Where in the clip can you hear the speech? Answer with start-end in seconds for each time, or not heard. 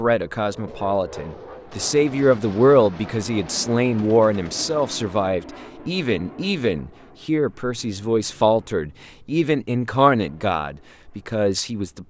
0.0-12.0.